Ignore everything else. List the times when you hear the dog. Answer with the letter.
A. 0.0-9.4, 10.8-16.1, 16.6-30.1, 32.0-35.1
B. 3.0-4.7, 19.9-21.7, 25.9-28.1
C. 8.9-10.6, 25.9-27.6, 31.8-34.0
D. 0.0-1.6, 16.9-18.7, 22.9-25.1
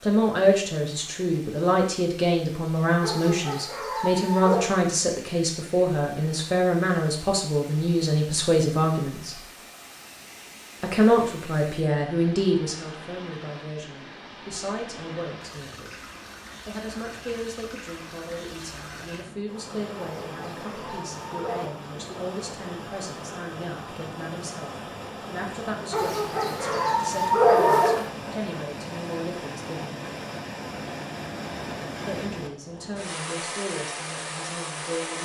B.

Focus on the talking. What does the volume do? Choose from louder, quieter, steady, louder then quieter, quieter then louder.
quieter.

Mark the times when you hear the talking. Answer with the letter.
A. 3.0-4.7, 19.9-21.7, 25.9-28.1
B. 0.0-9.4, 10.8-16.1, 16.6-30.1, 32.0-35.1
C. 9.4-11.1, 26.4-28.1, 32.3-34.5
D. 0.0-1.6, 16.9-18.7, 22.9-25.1
B.